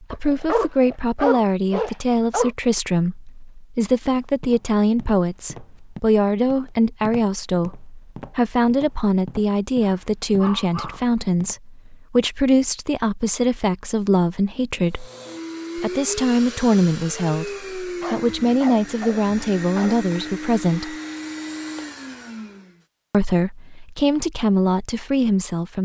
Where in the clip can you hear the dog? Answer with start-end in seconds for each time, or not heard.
0.1-2.5, 9.8-11.1, 18.0-20.4.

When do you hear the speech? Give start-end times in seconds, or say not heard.
0.0-15.1, 15.8-20.9, 23.1-25.8.